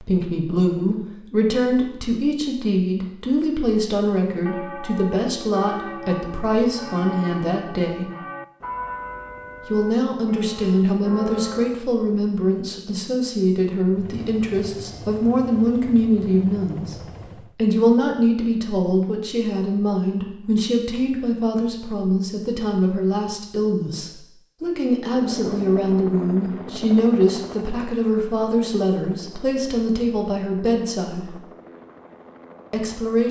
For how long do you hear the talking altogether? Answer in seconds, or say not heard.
30 s.